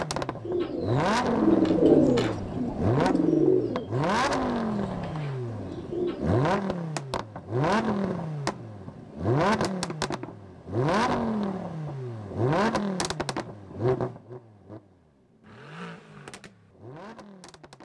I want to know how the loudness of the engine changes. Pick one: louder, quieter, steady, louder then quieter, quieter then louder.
quieter.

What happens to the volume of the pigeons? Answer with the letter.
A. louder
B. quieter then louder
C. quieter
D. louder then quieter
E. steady
B.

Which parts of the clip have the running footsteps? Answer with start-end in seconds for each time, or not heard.
not heard.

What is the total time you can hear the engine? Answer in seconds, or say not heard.
18 s.